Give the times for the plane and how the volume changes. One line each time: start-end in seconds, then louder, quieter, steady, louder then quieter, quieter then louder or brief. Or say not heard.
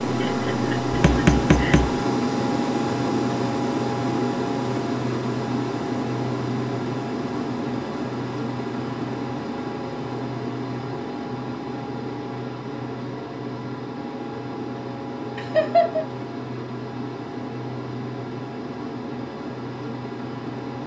0.0-20.8 quieter.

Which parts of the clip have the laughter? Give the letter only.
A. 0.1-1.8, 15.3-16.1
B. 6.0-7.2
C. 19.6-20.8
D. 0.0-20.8
A.